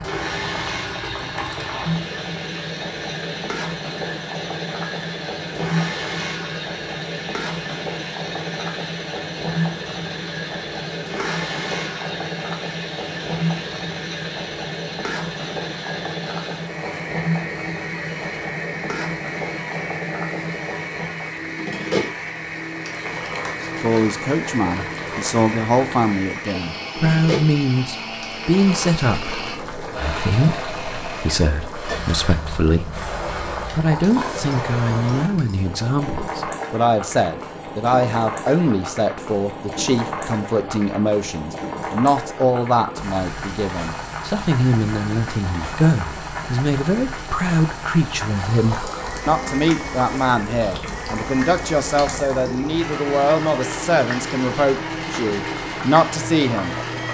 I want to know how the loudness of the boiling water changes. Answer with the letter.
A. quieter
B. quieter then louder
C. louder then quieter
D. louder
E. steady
E.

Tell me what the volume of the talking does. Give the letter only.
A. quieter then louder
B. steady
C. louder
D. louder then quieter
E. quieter
B.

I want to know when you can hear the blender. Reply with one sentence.
The blender can be heard from 0.0 to 35.3 s and from 48.4 to 57.1 s.